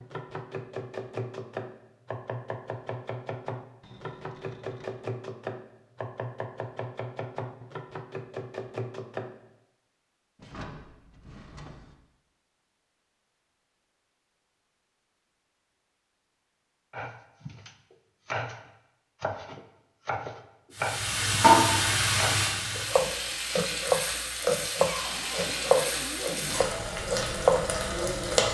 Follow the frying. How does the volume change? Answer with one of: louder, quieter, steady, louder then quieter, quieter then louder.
quieter.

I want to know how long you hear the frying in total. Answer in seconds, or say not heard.
8 s.